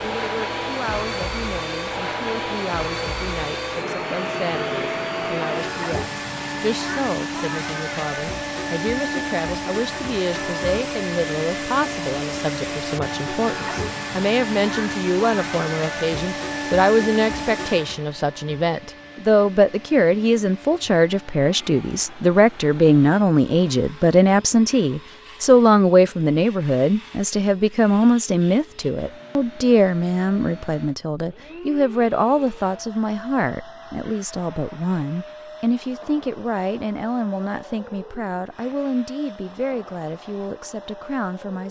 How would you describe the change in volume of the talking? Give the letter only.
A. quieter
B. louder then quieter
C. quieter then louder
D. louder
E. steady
B.